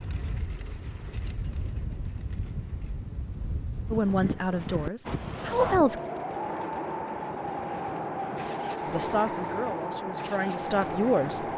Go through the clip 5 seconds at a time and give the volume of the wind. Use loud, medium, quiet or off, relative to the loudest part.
medium, loud, loud.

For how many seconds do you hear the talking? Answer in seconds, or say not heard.
5 s.